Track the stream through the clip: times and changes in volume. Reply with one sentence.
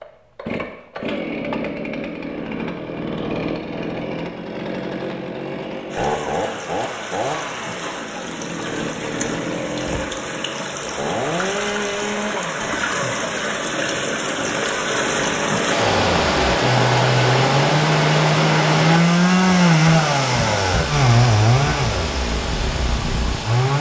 The stream can be heard from 5.9 to 23.7 s, getting louder then quieter.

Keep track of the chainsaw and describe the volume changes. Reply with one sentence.
The loudness of the chainsaw goes up.